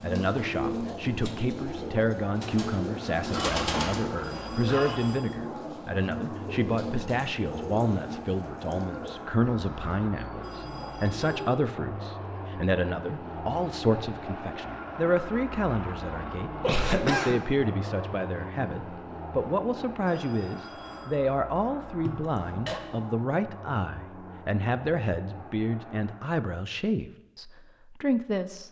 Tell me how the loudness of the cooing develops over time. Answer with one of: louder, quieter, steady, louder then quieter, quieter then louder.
quieter.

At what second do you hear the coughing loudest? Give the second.
17 s.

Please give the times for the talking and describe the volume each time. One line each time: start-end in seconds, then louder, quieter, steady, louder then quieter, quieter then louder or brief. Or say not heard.
0.0-28.6 steady.